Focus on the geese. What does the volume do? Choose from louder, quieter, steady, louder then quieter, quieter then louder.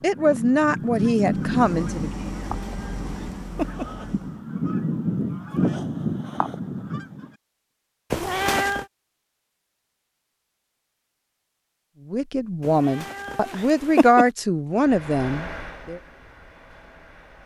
quieter then louder.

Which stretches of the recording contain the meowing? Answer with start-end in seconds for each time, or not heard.
2.4-3.9, 8.1-8.8, 12.6-14.2.